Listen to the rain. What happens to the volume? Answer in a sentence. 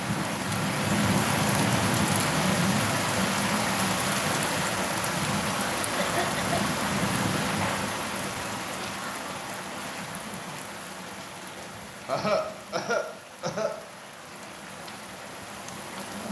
The volume of the rain goes down.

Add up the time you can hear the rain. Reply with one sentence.
You can hear the rain for 16 seconds altogether.